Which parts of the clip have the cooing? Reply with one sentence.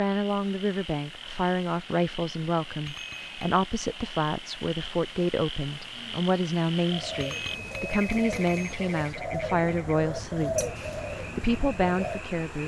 The cooing can be heard from 6.8 to 12.2 s.